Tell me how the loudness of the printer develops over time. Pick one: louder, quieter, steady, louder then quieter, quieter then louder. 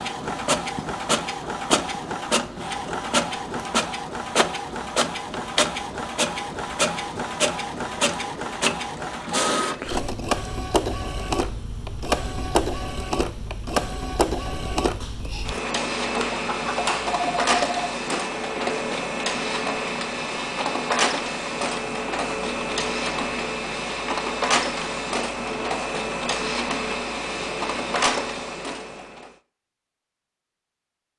steady.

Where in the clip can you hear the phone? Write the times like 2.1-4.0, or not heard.
16.1-17.9.